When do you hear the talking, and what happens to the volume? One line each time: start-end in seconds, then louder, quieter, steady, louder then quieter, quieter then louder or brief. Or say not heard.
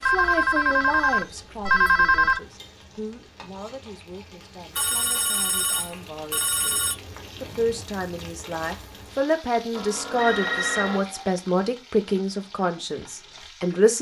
0.0-13.9 quieter then louder.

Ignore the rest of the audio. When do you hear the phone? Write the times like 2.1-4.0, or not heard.
0.0-2.4, 4.8-7.0, 9.8-11.2.